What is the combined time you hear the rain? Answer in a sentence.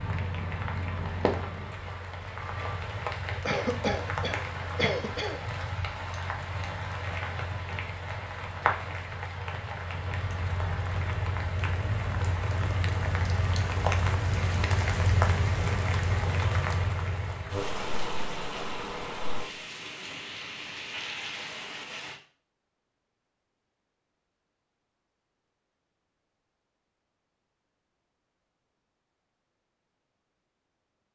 You can hear the rain for 22 seconds altogether.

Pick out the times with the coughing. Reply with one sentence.
The coughing can be heard from 3.4 to 5.4 s.